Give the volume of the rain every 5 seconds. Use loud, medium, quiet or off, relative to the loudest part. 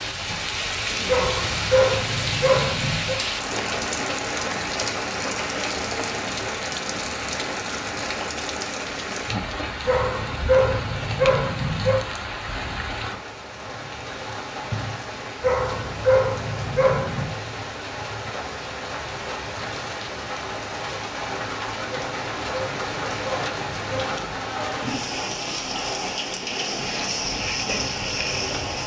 loud, loud, medium, medium, loud, loud.